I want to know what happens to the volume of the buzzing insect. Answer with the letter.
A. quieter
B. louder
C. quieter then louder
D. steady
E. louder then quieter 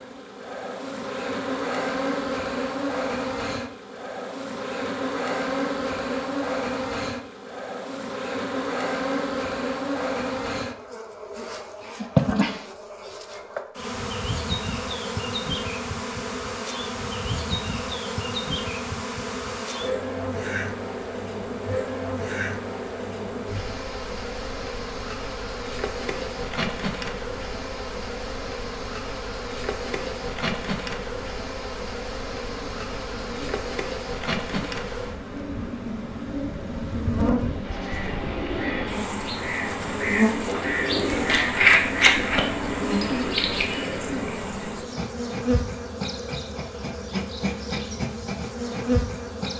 D.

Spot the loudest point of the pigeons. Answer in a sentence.
The loudest moment of the pigeons is at 42 seconds.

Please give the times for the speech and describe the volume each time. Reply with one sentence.
You can't hear the speech here.